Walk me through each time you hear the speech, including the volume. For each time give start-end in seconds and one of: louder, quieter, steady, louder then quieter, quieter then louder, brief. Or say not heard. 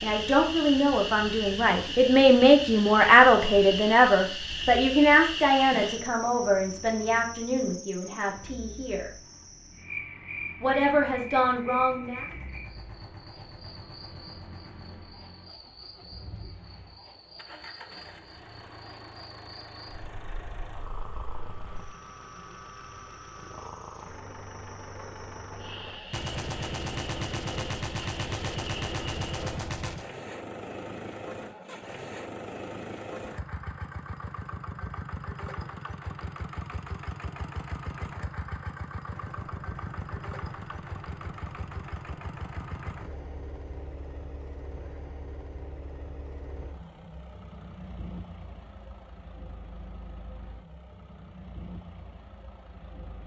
0.0-9.1 louder then quieter
10.6-12.2 brief.